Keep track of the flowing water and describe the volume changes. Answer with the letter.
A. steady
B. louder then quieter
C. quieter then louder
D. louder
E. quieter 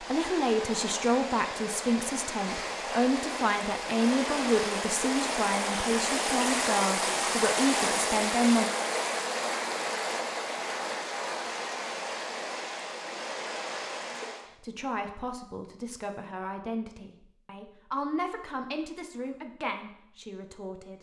B.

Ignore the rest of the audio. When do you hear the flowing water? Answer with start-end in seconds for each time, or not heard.
0.0-14.5.